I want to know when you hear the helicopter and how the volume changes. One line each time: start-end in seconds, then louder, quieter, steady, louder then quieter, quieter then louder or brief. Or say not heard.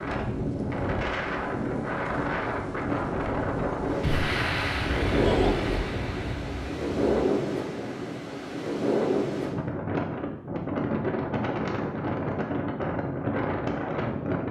not heard.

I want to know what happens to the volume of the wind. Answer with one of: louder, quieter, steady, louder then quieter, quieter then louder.
steady.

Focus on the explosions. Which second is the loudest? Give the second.
4 s.